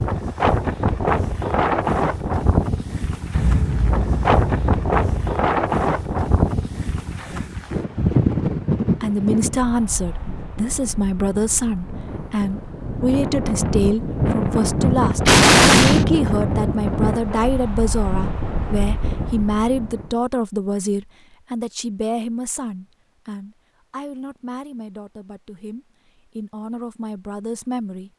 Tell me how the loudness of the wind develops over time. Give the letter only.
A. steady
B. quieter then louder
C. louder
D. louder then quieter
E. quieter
A.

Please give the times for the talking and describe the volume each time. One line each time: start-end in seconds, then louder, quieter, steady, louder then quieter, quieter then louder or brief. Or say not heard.
9.0-28.1 quieter.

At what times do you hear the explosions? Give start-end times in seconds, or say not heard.
3.3-5.3, 15.2-16.1.